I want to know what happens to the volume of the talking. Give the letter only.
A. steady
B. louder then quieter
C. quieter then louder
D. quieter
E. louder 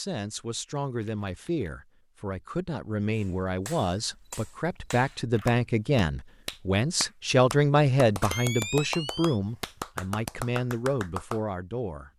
B.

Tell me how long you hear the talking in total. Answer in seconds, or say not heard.
12 s.